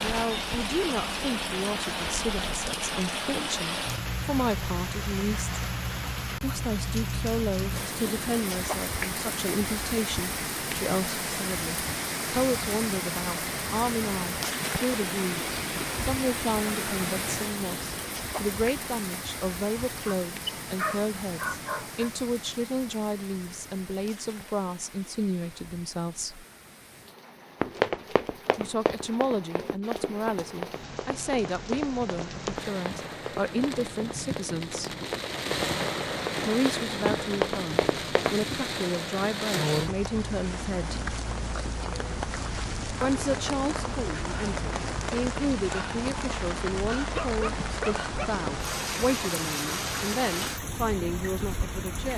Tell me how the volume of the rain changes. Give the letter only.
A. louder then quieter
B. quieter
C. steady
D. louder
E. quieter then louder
E.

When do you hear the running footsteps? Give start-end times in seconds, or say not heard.
27.6-38.4.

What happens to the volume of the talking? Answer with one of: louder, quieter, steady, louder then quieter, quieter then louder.
steady.